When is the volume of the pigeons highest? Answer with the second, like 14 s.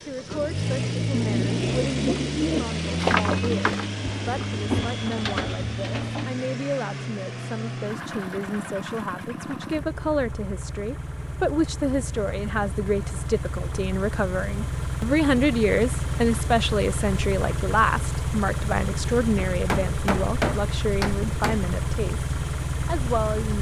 3 s.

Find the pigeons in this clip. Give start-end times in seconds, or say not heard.
0.3-6.3.